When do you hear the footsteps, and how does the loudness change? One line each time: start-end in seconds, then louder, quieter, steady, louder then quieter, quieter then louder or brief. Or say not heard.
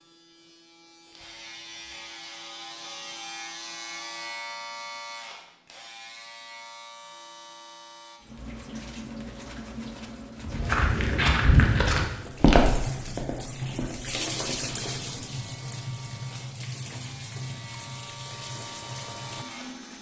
10.4-15.3 quieter.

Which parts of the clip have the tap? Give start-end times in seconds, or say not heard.
8.2-19.9.